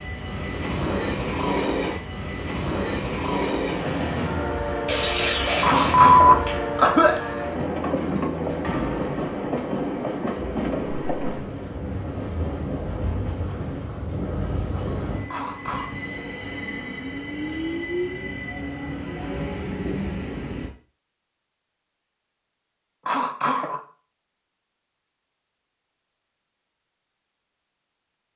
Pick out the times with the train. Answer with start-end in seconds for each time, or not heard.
0.0-20.7.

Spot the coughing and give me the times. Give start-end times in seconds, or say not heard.
5.6-7.2, 15.3-15.9, 23.1-23.8.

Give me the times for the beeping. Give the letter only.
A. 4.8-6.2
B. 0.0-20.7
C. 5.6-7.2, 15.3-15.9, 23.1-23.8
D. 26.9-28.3
A.